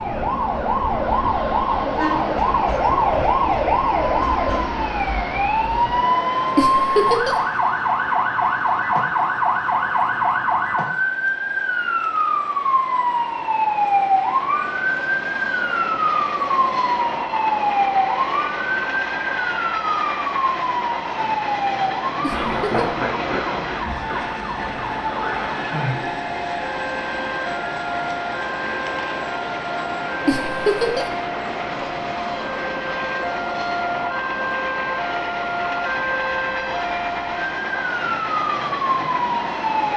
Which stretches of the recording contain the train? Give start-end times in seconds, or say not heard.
0.0-39.9.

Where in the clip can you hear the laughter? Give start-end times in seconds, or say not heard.
6.5-7.3, 22.2-22.9, 30.2-31.1.